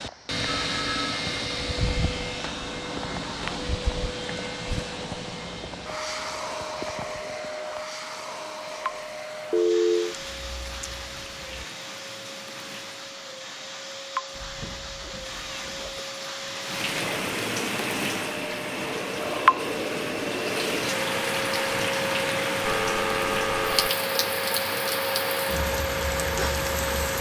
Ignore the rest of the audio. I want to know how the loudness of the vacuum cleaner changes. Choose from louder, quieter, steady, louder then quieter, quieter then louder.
quieter then louder.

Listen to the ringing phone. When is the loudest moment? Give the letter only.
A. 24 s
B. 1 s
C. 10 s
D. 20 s
C.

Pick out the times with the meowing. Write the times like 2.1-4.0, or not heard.
10.2-11.7, 14.3-16.1.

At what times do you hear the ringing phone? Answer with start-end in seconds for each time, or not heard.
0.5-0.9, 9.5-10.2, 22.6-23.9.